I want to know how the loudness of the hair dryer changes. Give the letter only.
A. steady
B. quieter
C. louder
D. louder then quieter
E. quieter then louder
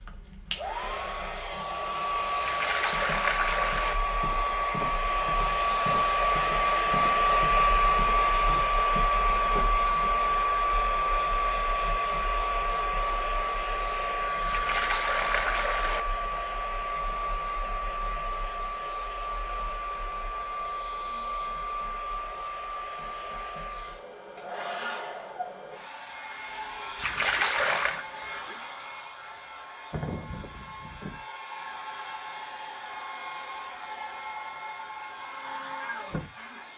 B.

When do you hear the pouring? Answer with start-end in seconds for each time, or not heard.
2.4-4.0, 14.4-16.1, 26.9-28.1.